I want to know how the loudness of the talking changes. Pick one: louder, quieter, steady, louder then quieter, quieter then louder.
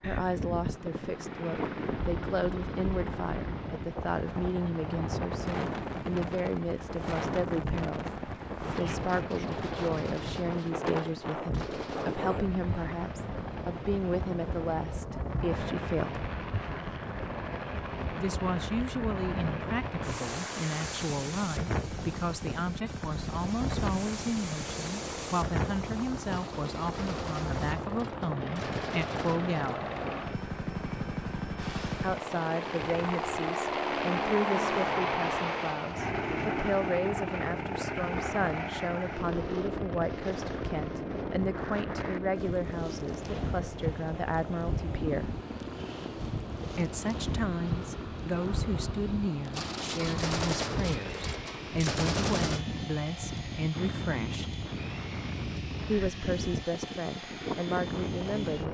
steady.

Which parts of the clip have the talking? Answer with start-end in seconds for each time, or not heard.
0.1-16.2, 18.1-29.9, 32.0-45.3, 46.8-54.5, 55.5-58.6.